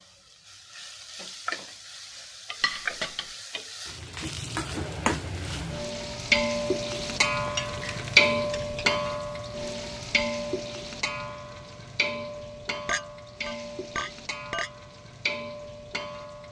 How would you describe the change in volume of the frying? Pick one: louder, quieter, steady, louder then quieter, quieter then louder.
louder then quieter.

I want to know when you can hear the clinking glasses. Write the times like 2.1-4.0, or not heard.
2.6-3.3, 7.5-8.9, 12.8-14.7.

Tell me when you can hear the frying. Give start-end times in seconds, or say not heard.
0.0-16.4.